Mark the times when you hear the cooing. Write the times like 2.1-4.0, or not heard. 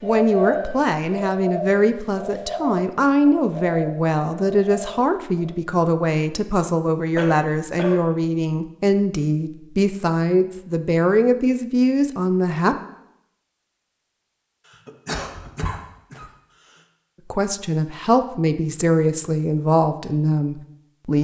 0.0-5.5.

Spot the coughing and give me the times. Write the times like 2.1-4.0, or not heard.
7.2-8.0, 14.7-16.8.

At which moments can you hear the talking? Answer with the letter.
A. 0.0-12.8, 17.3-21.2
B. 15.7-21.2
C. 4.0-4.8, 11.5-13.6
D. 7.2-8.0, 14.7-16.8
A.